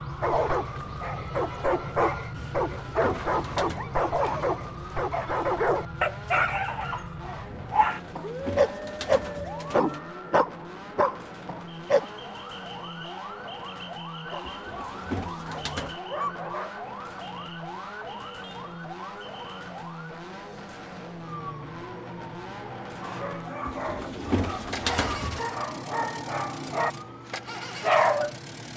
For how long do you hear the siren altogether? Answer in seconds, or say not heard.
29 s.